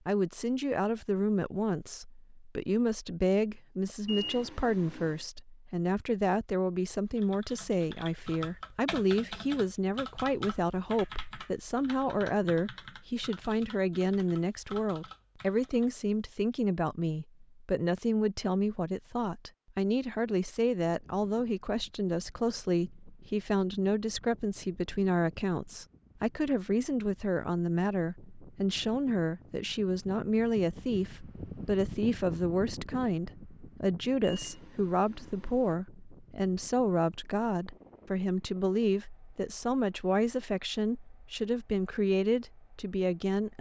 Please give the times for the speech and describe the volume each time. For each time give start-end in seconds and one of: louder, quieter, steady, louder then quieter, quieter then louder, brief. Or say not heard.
0.1-43.5 steady.